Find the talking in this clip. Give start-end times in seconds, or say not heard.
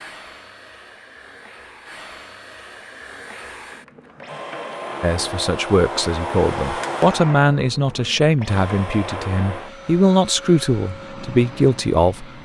5.0-12.4.